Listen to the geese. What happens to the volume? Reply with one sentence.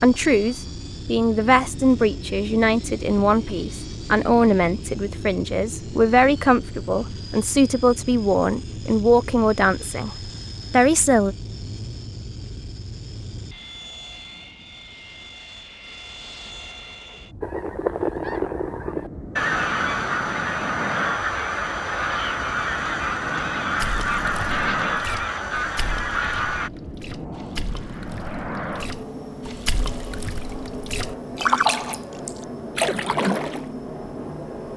The volume of the geese stays about the same.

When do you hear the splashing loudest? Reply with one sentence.
The loudest moment of the splashing is at 32 seconds.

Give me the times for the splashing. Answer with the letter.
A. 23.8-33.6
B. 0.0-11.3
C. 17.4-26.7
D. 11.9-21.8
A.